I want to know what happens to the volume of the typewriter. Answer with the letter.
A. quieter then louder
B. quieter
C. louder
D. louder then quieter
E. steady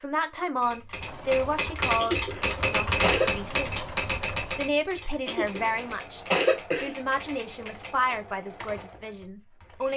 B.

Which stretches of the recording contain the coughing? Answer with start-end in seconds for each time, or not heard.
1.9-3.3, 5.2-7.0.